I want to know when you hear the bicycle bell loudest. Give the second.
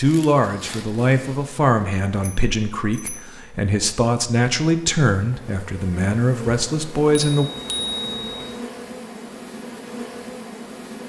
8 s.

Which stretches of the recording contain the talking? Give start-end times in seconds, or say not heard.
0.0-7.5.